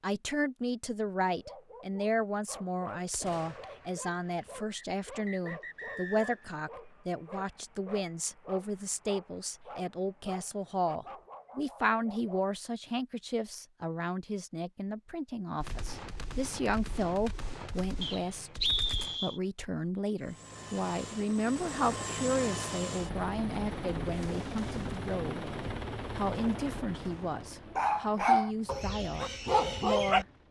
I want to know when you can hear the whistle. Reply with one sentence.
The whistle can be heard from 4.8 to 6.5 s and from 18.0 to 19.4 s.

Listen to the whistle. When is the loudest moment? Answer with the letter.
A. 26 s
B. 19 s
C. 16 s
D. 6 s
B.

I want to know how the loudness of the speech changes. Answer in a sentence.
The loudness of the speech stays about the same.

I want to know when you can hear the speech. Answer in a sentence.
You can hear the speech from 0.0 to 18.6 s, from 19.2 to 25.6 s and from 26.1 to 30.2 s.